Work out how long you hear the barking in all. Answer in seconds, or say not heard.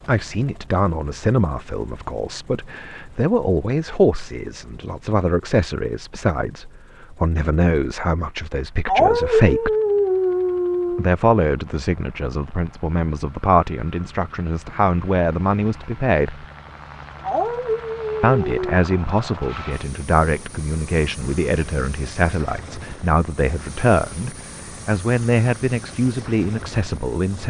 4 s.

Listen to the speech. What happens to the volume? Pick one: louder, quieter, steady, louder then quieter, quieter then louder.
steady.